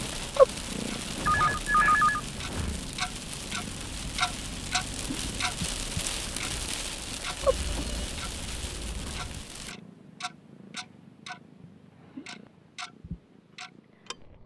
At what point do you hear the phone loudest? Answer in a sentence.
The volume of the phone peaks at 2 seconds.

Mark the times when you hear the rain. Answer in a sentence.
The rain can be heard from 0.0 to 9.8 s.